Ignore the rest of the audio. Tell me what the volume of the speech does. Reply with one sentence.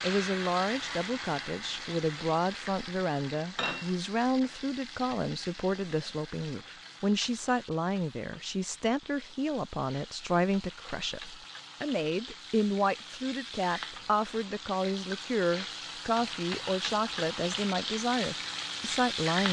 The loudness of the speech stays about the same.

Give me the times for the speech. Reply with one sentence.
You can hear the speech from 0.0 to 19.4 s.